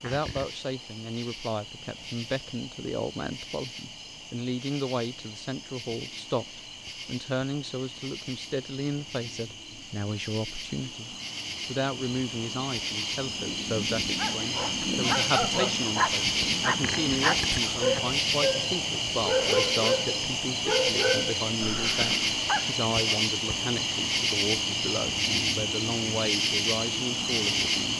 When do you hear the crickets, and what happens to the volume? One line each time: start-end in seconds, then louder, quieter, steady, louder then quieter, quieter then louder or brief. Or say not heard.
0.0-27.9 louder.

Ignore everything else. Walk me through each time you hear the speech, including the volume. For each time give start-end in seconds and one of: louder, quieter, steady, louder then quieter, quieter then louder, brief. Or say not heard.
0.0-27.9 steady.